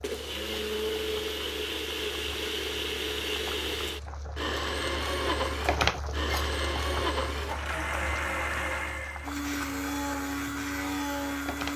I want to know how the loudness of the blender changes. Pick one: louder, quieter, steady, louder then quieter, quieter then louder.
steady.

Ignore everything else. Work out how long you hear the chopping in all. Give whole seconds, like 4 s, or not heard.
not heard.